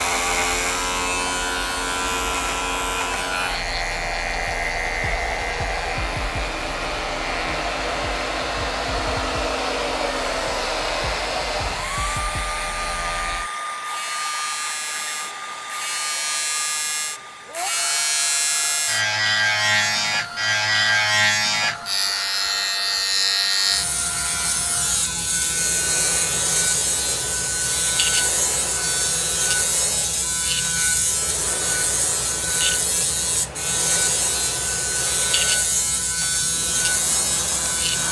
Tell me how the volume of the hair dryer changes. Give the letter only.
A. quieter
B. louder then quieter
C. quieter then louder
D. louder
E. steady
A.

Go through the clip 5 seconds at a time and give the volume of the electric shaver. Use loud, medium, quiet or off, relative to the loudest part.
loud, medium, medium, loud, loud, loud, loud, loud.